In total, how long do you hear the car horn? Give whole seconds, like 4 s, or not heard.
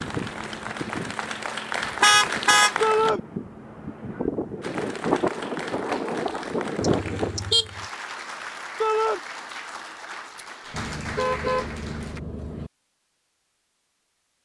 4 s.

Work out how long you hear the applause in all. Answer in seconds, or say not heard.
11 s.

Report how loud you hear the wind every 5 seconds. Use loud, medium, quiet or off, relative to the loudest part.
medium, loud, off.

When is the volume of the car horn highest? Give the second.
2 s.